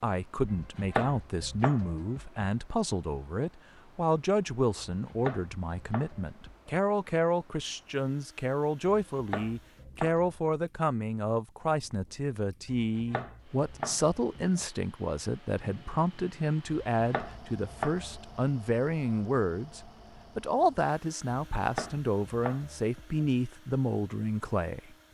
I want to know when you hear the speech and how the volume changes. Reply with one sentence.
The speech can be heard from 0.0 to 24.9 s, at a steady volume.